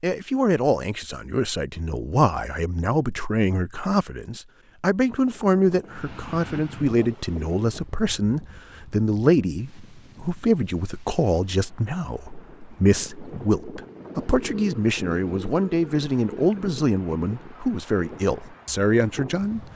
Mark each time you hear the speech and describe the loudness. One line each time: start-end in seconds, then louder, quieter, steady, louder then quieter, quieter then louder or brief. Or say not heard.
0.0-19.6 steady.